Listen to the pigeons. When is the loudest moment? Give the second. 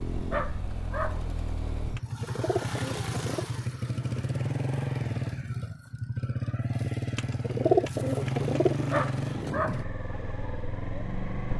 8 s.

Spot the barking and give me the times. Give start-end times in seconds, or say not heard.
0.3-1.2, 8.9-9.8.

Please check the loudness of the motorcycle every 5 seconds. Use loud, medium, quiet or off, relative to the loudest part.
loud, loud, medium.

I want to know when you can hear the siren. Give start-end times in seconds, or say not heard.
not heard.